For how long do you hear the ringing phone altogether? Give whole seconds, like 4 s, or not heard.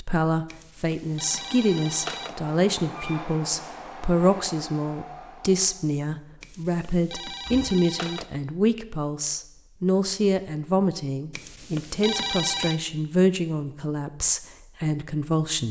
5 s.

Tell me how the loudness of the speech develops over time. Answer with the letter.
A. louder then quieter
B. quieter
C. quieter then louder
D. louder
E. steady
E.